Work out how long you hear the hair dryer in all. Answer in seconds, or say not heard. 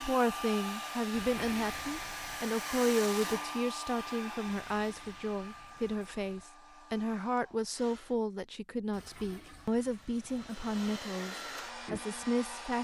11 s.